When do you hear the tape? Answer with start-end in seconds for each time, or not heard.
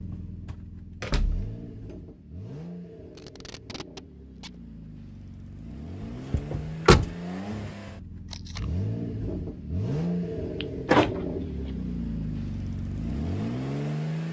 3.1-4.6, 8.2-8.7.